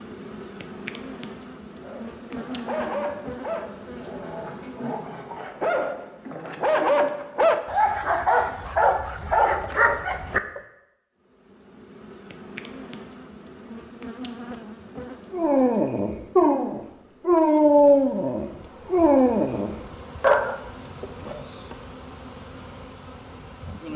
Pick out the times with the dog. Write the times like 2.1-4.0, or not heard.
1.8-10.6, 15.3-20.6.